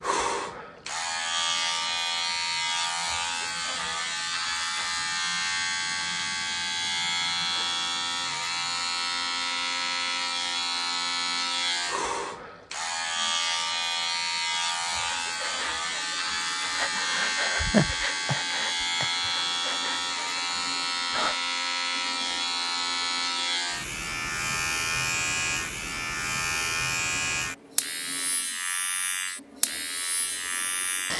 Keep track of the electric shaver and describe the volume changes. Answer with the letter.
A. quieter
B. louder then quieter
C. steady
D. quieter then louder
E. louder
C.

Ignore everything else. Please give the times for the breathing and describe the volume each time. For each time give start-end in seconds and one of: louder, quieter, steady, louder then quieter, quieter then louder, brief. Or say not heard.
14.8-21.4 louder then quieter.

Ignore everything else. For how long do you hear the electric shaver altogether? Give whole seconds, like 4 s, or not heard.
31 s.